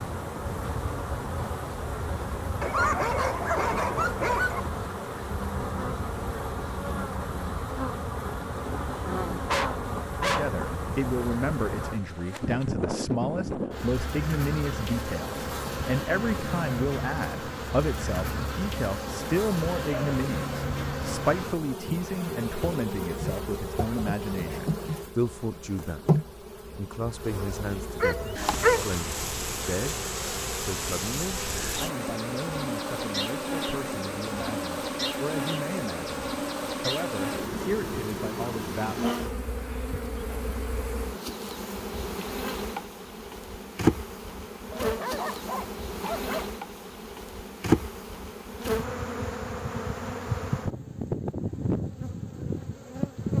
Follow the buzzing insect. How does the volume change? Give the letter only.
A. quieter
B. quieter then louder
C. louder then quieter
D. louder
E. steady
E.